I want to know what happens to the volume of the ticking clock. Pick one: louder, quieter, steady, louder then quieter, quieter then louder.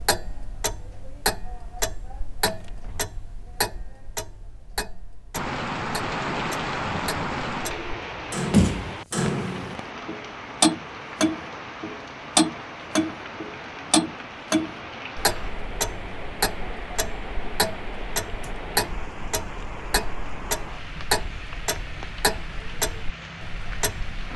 louder then quieter.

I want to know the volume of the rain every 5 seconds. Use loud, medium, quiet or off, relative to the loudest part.
off, loud, medium, medium, medium.